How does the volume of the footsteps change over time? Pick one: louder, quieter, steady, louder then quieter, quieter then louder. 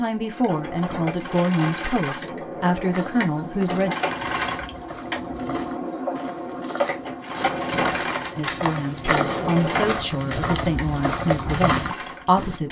louder.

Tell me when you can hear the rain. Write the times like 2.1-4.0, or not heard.
not heard.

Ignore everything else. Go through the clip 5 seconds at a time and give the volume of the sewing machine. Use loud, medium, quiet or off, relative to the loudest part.
loud, loud, medium.